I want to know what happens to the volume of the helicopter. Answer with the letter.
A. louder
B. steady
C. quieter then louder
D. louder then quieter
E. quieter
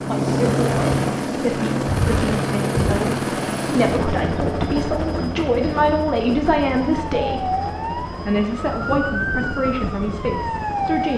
E.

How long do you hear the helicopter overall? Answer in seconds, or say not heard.
11 s.